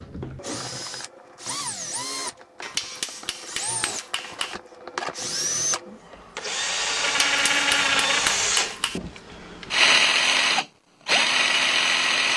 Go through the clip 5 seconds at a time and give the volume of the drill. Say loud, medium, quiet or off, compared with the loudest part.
quiet, loud, loud.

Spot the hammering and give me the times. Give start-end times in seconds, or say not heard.
2.6-4.5, 7.0-9.0.